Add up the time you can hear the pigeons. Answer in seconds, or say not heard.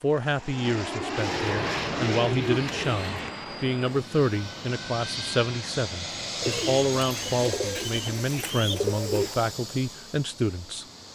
5 s.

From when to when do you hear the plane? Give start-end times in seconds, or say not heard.
0.1-11.1.